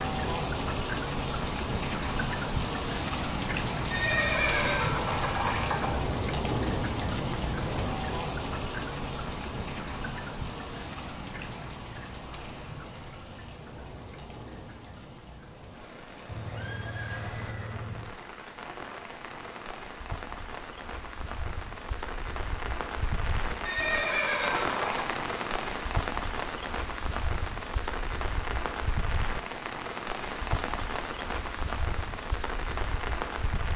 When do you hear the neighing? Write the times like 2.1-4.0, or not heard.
3.9-5.9, 16.2-18.1, 23.6-25.1.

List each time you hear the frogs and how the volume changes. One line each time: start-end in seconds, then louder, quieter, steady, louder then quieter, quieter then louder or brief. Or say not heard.
not heard.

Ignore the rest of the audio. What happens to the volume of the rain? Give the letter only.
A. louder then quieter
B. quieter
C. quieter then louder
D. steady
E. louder
C.